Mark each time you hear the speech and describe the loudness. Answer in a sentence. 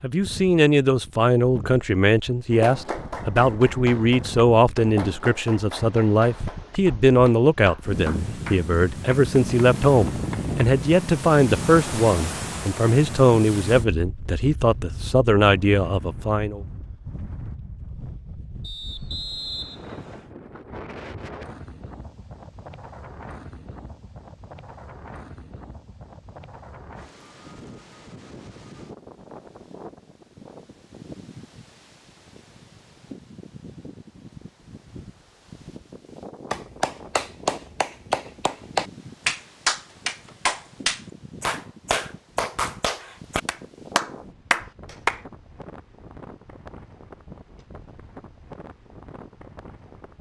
You can hear the speech from 0.0 to 16.6 s, at a steady volume.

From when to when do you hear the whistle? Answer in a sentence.
You can hear the whistle from 18.6 to 20.3 s.